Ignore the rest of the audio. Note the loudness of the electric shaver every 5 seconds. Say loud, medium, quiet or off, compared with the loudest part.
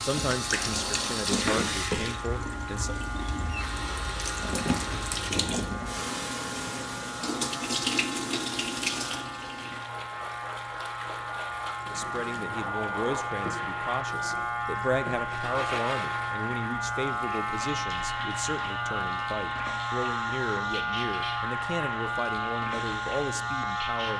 medium, medium, loud, loud, loud.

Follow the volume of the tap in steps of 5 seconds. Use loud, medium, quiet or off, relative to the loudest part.
loud, loud, medium, medium, medium.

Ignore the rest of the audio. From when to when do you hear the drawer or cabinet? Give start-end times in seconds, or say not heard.
0.4-1.6.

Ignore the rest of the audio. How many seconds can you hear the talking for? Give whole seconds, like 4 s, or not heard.
15 s.